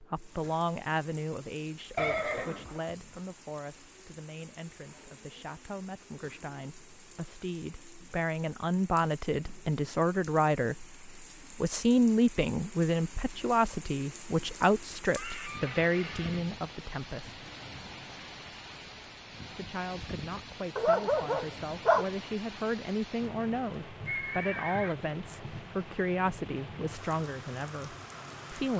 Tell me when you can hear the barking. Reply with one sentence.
You can hear the barking from 20.8 to 22.1 s.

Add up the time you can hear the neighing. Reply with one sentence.
The neighing can be heard for 3 seconds in total.